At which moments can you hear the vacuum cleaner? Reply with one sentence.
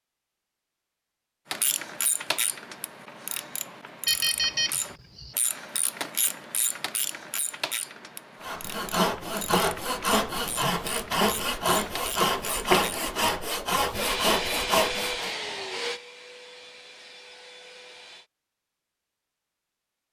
You can hear the vacuum cleaner from 13.9 to 18.3 s.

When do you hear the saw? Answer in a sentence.
The saw can be heard from 8.4 to 15.3 s.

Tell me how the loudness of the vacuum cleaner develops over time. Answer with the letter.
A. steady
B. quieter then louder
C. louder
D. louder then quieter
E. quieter
E.